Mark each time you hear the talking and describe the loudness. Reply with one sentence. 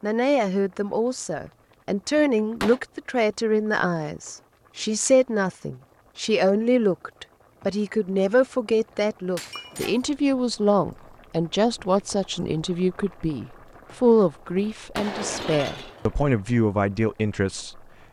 You can hear the talking from 0.0 to 17.8 s, at a steady volume.